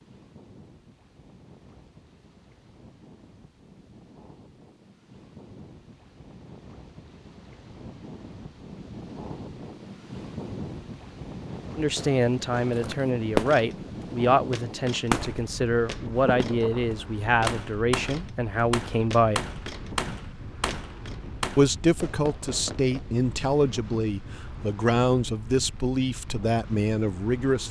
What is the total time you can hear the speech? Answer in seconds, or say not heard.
14 s.